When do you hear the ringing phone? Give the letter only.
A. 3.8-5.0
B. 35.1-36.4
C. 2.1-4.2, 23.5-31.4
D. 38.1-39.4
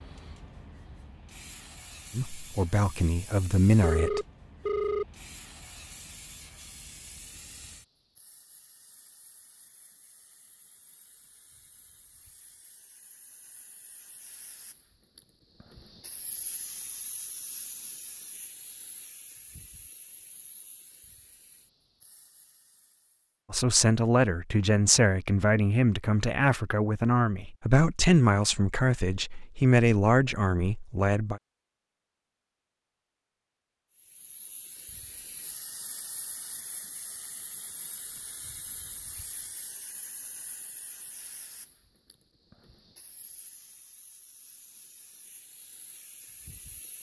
A.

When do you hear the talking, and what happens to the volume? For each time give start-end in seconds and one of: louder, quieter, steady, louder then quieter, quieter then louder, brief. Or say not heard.
2.1-4.2 brief
23.5-31.4 steady.